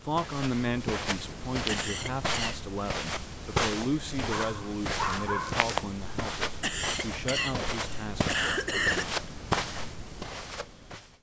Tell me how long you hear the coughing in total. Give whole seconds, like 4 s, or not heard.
3 s.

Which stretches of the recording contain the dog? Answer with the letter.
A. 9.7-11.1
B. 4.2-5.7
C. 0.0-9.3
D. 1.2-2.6
B.